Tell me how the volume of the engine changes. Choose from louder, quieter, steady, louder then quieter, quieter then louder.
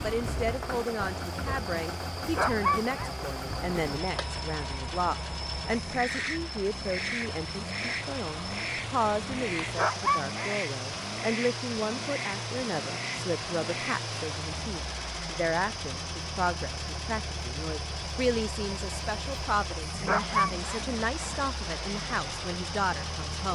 steady.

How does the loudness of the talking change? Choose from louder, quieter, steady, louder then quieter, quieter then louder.
steady.